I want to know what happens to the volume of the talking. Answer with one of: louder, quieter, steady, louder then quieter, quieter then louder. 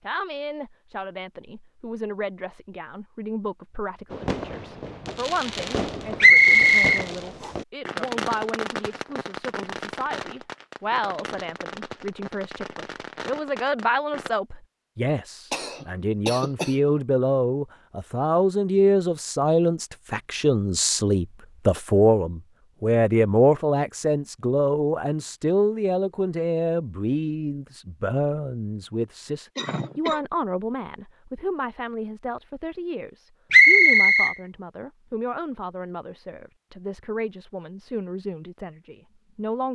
louder then quieter.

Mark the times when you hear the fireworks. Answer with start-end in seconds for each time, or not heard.
4.1-14.3.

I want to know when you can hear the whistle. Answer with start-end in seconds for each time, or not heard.
6.2-7.0, 33.5-34.4.